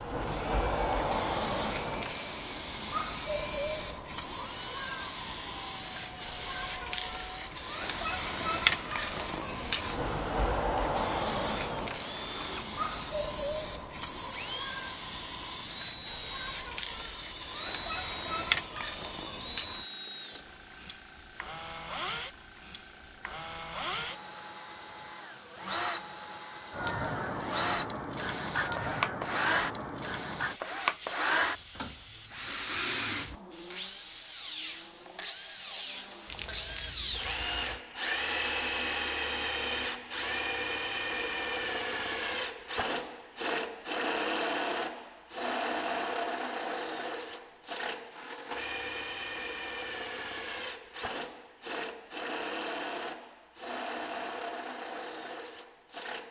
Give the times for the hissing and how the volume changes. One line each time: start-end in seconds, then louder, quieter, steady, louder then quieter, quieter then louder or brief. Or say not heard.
0.0-37.9 quieter.